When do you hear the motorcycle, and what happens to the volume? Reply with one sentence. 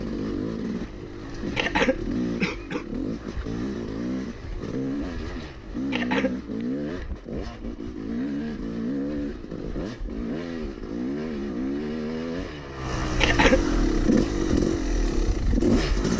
You can hear the motorcycle from 0.0 to 16.1 s, getting louder.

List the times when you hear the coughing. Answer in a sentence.
The coughing can be heard from 1.6 to 2.9 s, from 5.9 to 6.3 s and from 13.2 to 13.7 s.